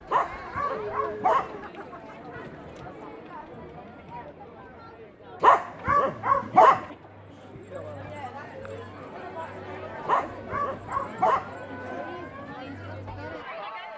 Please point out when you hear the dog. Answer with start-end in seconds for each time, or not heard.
0.1-1.6, 5.4-6.8, 10.1-11.5.